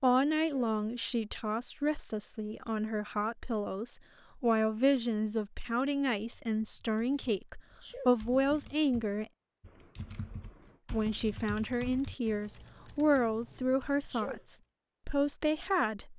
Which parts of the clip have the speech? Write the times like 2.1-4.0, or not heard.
0.0-9.2, 10.9-16.1.